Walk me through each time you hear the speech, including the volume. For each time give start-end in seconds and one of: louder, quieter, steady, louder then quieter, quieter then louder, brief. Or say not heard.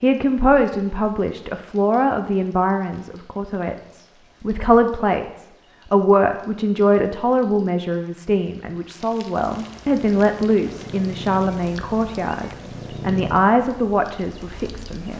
0.0-15.1 steady.